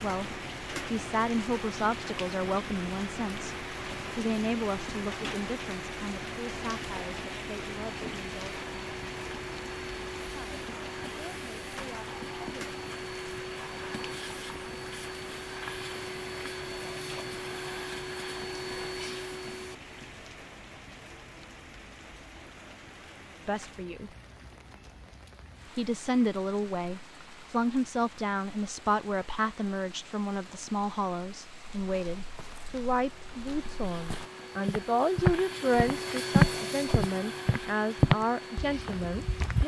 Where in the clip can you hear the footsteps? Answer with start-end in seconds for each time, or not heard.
31.8-39.6.